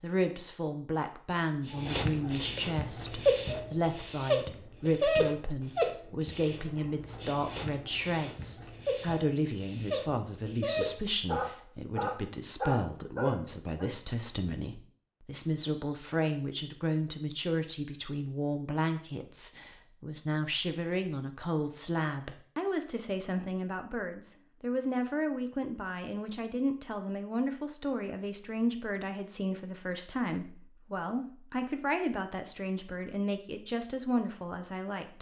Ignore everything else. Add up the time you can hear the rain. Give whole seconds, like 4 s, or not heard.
not heard.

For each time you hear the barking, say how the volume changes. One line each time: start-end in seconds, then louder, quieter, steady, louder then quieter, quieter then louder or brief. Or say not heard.
1.6-13.9 quieter then louder.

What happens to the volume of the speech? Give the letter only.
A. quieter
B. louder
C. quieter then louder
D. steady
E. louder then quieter
D.